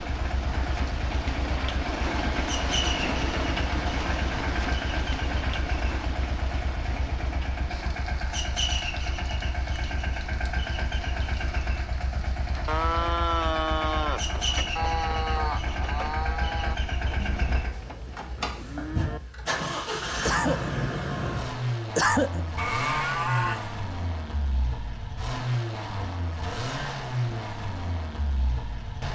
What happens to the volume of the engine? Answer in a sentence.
The loudness of the engine stays about the same.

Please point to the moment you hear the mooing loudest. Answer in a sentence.
The loudest moment of the mooing is at 22 seconds.